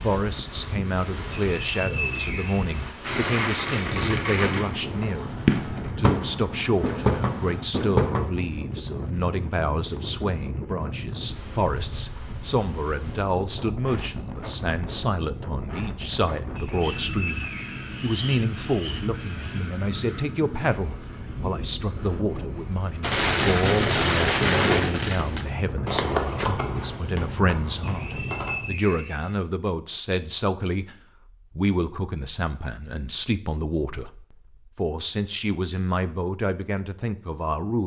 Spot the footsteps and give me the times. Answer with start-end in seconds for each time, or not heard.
not heard.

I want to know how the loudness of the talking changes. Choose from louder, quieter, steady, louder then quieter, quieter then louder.
steady.